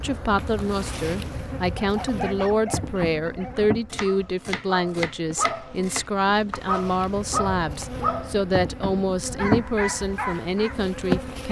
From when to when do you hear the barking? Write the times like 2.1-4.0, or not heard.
1.8-10.9.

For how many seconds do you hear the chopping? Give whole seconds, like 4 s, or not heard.
3 s.